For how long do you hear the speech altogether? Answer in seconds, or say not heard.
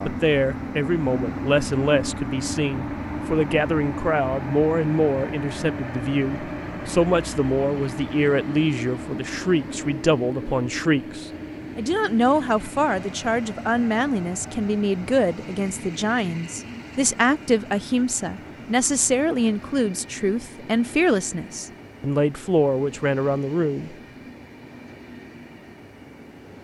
24 s.